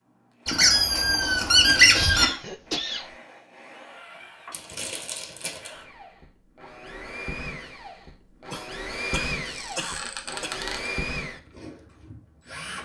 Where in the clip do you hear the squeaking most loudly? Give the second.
2 s.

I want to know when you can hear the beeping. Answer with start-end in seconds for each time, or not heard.
not heard.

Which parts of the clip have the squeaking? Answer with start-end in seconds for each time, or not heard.
0.5-2.2, 4.5-5.7, 9.5-10.9.